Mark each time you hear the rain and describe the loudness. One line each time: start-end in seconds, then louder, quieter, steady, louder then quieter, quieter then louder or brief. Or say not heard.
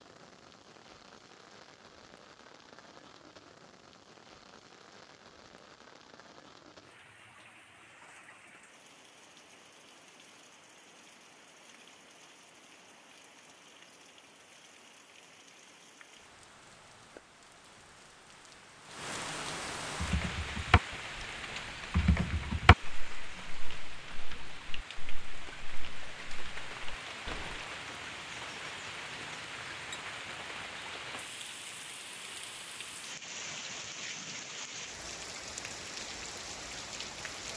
0.0-37.5 louder.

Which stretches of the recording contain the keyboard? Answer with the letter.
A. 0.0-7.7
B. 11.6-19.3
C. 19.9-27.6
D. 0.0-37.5
C.